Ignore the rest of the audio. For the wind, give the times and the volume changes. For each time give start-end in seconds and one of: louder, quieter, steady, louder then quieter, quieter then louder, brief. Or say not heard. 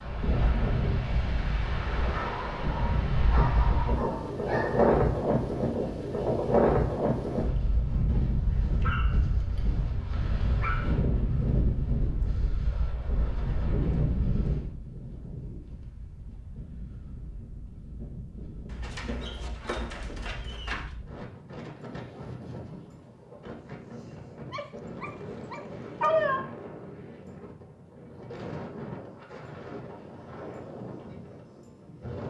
0.0-32.2 quieter.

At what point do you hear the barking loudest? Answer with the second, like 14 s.
26 s.